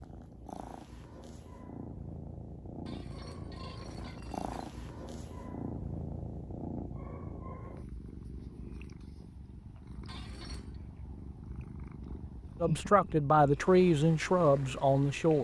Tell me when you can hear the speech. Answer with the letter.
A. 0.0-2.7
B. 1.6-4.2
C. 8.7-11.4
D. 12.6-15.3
D.